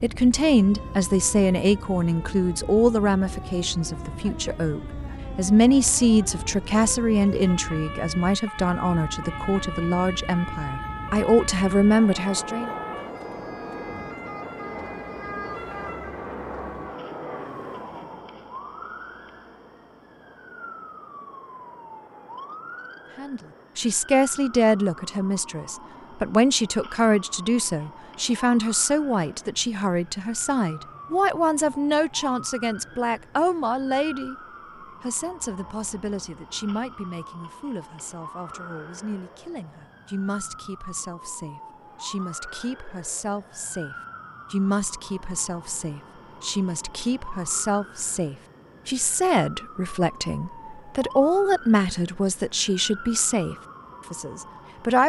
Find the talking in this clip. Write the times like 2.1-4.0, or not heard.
0.0-12.7, 23.1-34.4, 35.0-55.0.